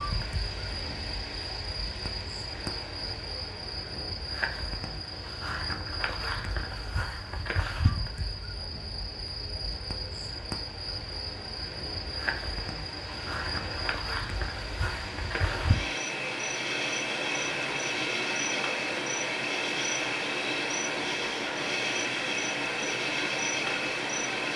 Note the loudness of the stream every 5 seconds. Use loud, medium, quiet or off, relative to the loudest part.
medium, quiet, medium, loud, loud.